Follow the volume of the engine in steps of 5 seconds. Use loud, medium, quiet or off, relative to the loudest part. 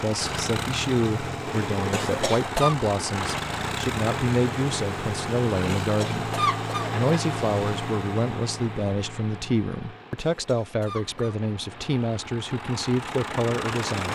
loud, loud, medium.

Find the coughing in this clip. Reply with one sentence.
You can hear the coughing from 1.9 to 2.8 s, from 5.8 to 7.2 s and from 10.2 to 11.5 s.